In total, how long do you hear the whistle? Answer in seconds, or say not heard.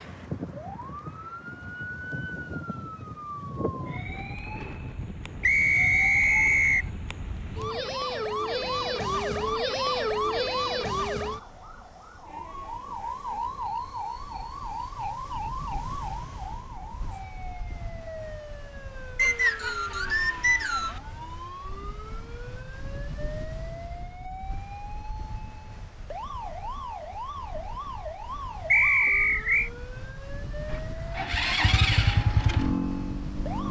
4 s.